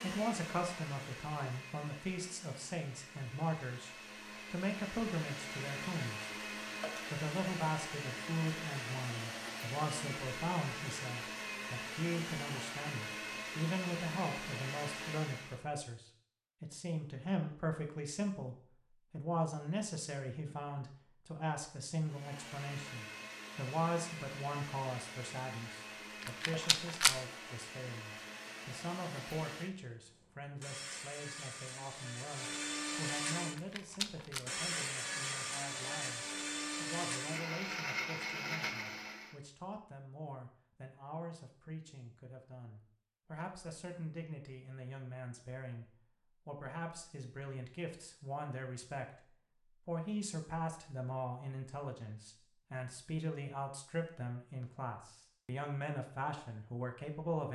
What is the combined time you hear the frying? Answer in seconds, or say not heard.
not heard.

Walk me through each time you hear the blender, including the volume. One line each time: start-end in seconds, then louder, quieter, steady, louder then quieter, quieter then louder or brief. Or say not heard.
0.0-15.7 louder
22.0-39.4 louder.